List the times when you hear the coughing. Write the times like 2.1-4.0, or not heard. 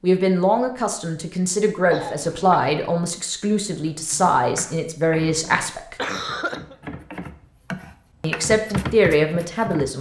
1.9-2.8, 5.5-6.8.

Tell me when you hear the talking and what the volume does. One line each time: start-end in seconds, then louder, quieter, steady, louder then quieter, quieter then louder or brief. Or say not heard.
0.0-6.0 steady
8.2-9.9 brief.